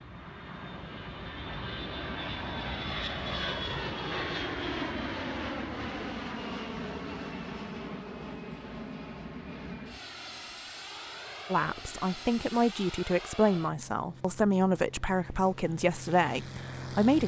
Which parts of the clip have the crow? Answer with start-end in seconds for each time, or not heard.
not heard.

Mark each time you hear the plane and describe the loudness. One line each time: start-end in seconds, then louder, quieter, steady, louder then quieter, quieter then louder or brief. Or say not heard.
0.0-17.2 quieter.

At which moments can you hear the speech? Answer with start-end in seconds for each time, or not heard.
11.5-17.2.